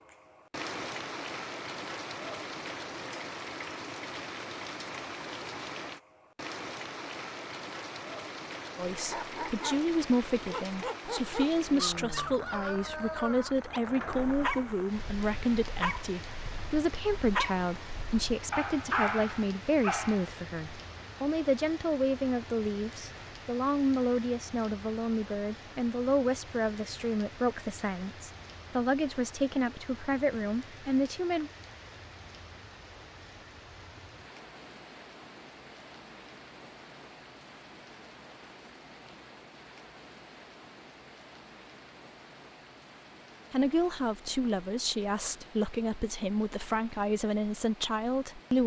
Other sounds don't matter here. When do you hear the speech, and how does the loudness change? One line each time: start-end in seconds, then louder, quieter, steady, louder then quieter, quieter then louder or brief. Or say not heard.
8.8-31.5 steady
43.5-48.6 steady.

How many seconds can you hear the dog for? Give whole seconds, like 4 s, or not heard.
11 s.